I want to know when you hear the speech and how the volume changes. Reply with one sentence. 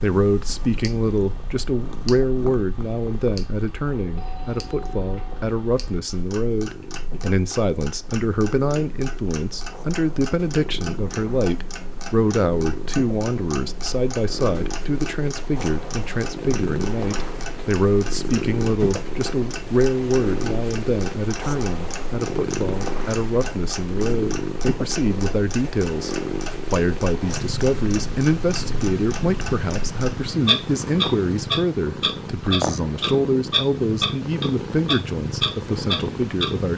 You can hear the speech from 0.0 to 36.7 s, at a steady volume.